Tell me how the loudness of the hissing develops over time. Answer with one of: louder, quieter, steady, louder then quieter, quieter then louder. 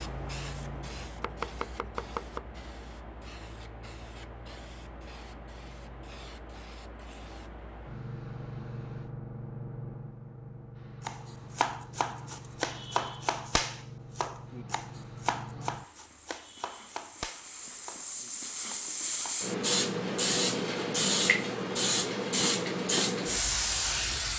louder.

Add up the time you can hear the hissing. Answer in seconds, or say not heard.
24 s.